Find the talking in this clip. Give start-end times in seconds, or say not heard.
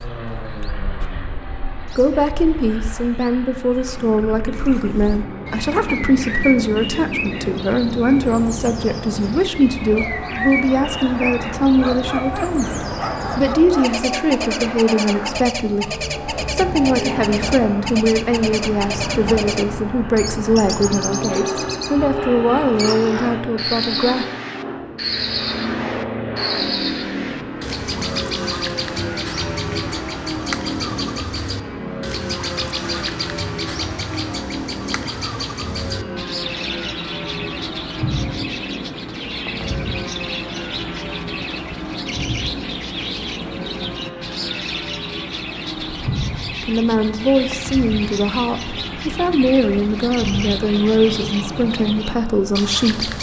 1.9-24.2, 46.6-53.1.